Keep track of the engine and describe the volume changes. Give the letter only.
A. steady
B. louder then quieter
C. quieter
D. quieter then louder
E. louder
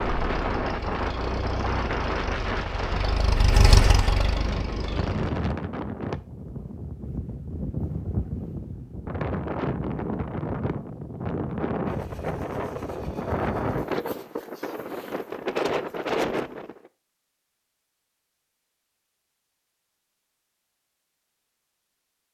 B.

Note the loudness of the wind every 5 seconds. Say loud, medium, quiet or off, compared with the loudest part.
loud, loud, loud, loud, off.